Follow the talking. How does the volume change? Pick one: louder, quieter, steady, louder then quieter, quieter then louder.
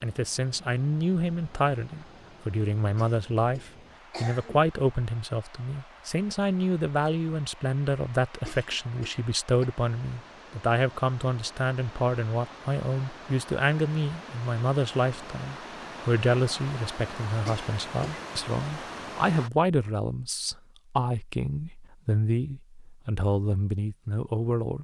steady.